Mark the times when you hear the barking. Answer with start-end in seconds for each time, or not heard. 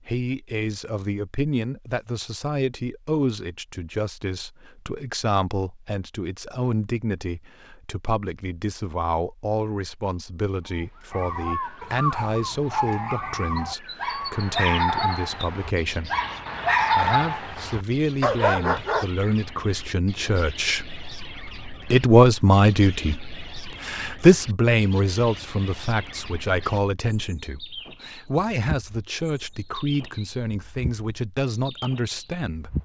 11.1-19.1.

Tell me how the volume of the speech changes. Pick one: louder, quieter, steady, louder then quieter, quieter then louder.
louder then quieter.